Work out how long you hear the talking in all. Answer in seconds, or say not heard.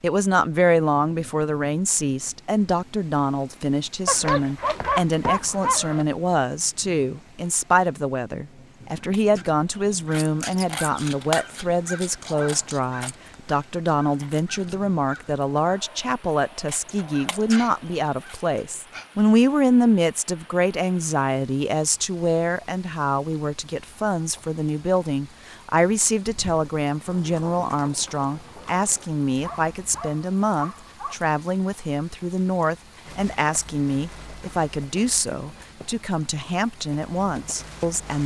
38 s.